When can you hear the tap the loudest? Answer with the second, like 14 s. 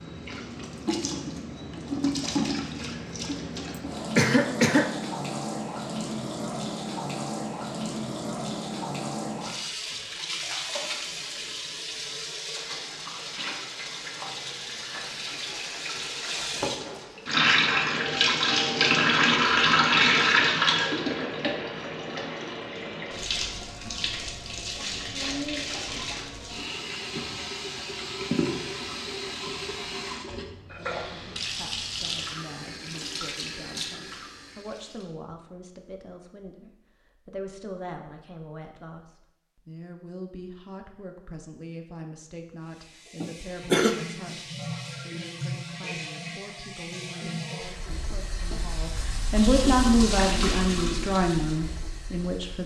20 s.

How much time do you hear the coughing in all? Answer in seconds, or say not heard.
2 s.